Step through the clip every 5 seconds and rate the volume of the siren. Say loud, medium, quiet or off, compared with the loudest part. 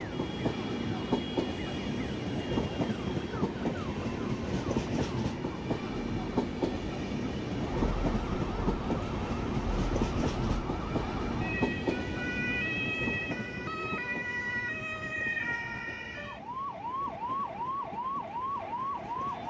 quiet, medium, loud, loud.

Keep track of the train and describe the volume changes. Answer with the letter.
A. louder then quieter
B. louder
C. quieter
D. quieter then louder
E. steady
C.